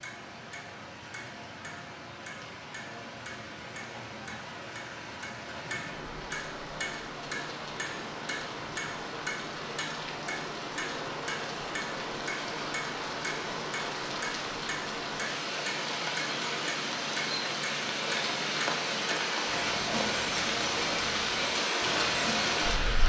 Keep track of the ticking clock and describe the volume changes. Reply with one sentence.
The loudness of the ticking clock goes up.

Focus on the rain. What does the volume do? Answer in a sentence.
The loudness of the rain goes up.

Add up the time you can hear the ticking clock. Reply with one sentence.
The ticking clock can be heard for 23 seconds in total.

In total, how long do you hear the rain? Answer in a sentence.
The rain can be heard for 23 seconds in total.